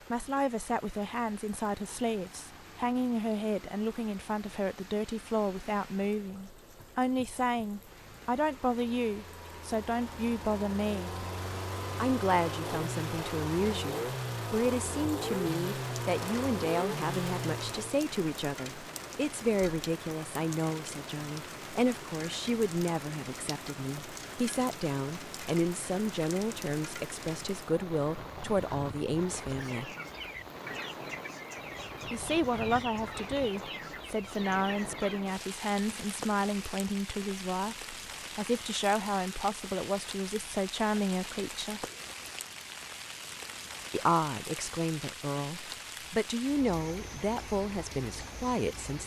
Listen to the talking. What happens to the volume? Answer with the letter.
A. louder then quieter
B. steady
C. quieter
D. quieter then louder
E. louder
B.